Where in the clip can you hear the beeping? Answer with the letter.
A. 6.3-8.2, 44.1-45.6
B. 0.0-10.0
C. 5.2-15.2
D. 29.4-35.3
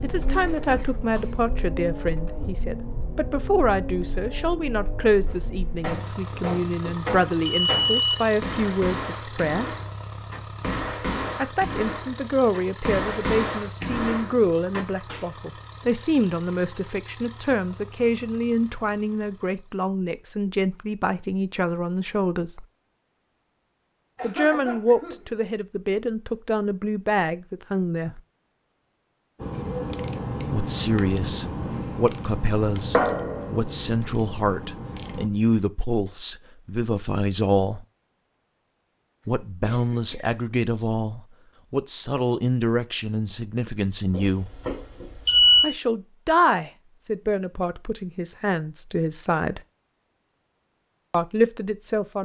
A.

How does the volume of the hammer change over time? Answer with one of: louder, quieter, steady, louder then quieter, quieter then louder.
steady.